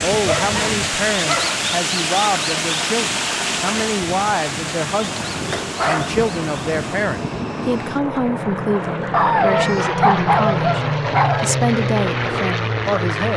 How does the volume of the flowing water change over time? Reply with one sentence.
The volume of the flowing water goes down.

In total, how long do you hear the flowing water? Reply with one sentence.
The flowing water can be heard for 7 seconds in total.